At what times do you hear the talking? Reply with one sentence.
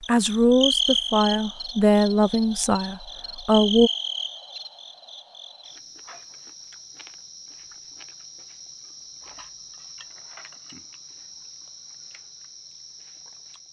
The talking can be heard from 0.1 to 3.9 s.